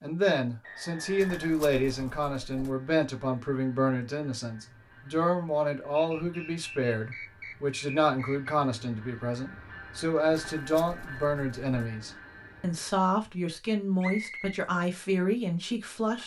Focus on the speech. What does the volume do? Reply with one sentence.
The loudness of the speech stays about the same.